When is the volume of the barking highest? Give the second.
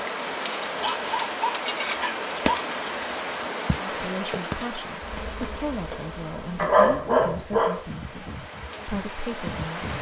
7 s.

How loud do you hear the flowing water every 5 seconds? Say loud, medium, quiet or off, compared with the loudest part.
loud, medium.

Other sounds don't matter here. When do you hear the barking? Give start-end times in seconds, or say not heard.
0.8-2.6, 6.5-7.8.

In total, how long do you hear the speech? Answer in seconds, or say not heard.
6 s.